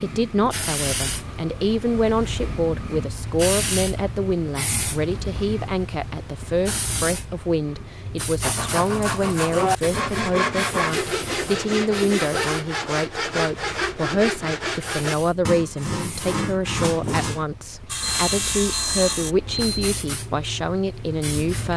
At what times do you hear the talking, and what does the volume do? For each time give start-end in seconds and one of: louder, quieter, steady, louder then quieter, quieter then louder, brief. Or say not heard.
0.0-21.7 steady.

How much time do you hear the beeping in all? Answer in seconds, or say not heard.
2 s.